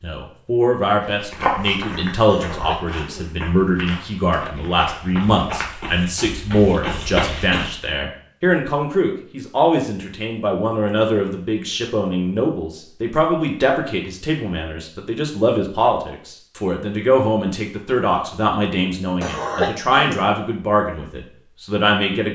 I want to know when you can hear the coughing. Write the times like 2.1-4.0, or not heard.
2.2-3.3, 19.2-20.2.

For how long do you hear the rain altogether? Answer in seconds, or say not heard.
not heard.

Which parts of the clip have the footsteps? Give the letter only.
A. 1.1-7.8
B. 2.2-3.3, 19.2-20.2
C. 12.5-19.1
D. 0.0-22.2
A.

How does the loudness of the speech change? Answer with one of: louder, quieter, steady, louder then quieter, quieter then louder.
steady.